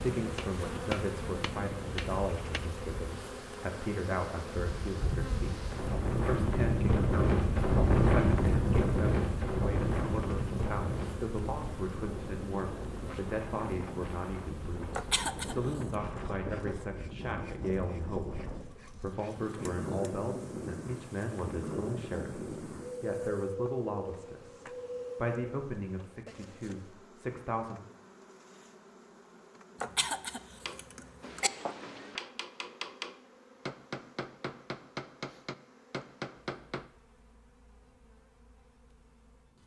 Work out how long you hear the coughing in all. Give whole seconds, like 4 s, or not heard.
3 s.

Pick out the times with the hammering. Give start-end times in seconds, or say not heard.
0.1-2.6, 30.6-36.9.